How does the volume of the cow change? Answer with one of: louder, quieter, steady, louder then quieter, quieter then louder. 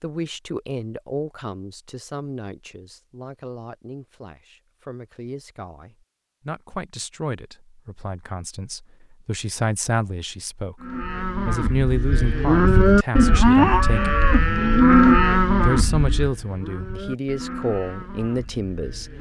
louder then quieter.